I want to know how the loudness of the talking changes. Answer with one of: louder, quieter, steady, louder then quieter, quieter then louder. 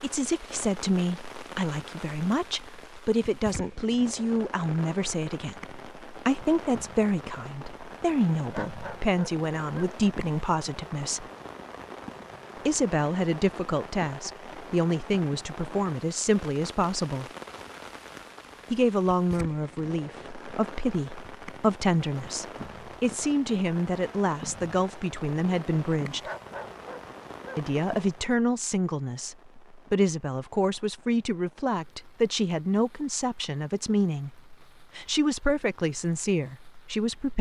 steady.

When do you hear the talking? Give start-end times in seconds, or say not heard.
0.0-11.2, 12.6-17.3, 18.7-26.3, 27.6-37.3.